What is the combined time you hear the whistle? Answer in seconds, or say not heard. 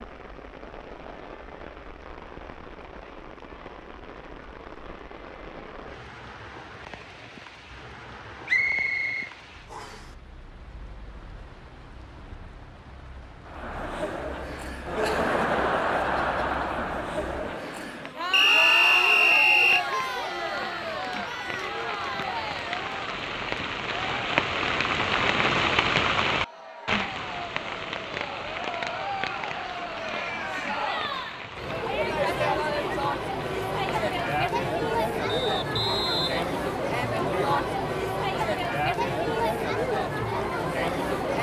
5 s.